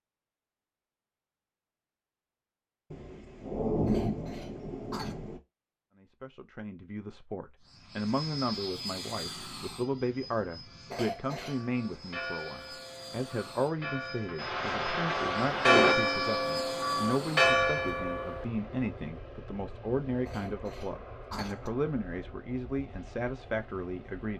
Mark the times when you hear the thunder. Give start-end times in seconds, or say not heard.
2.9-5.4, 14.3-15.9.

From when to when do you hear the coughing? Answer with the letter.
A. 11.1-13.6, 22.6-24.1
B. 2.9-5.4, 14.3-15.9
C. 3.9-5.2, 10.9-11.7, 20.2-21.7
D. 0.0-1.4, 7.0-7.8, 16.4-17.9
C.